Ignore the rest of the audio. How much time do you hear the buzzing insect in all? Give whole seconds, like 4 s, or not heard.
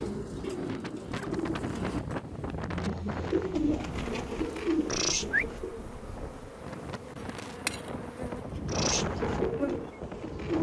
7 s.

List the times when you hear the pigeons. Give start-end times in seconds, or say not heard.
0.0-5.8, 8.6-10.5.